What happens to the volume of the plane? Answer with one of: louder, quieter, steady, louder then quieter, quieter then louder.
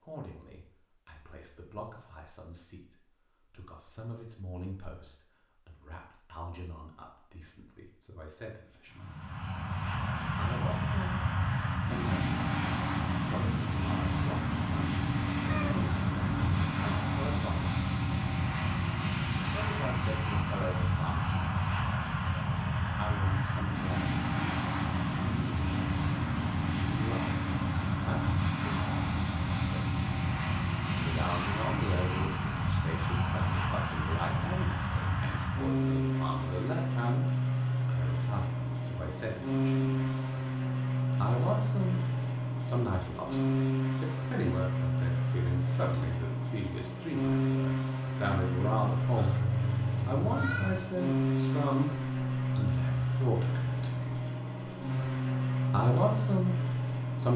steady.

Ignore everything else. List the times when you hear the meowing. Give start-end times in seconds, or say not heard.
15.4-16.7, 49.1-51.0.